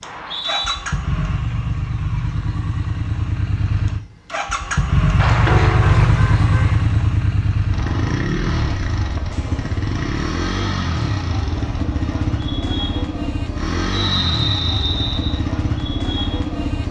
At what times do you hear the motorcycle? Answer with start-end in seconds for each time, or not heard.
0.0-16.8.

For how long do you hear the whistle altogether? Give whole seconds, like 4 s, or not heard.
2 s.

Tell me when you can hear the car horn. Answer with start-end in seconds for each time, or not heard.
5.5-6.8.